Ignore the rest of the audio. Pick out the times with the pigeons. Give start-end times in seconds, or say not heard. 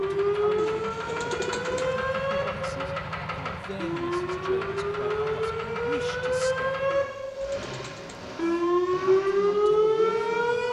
0.6-1.9, 6.9-8.2.